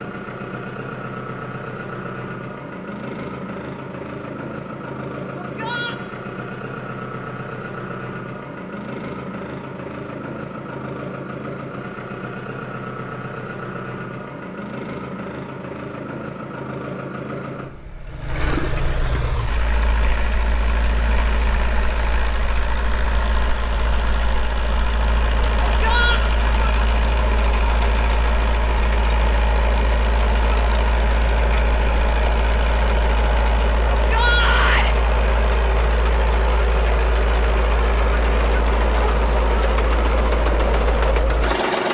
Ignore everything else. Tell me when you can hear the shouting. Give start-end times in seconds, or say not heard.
5.3-6.0, 25.6-26.2, 34.0-35.0.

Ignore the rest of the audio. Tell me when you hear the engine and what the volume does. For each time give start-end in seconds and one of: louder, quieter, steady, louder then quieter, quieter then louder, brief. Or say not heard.
0.0-41.9 louder.